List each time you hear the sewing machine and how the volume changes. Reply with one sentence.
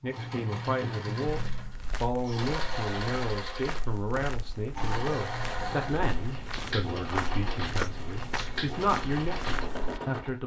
You can hear the sewing machine from 0.0 to 10.4 s, at a steady volume.